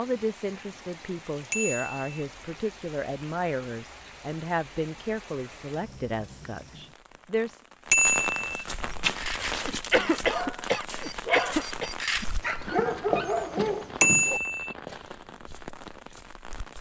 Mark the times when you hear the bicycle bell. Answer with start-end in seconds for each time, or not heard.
1.5-2.2, 7.9-8.6, 14.0-14.8.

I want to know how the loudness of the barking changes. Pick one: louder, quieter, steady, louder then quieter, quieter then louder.
louder.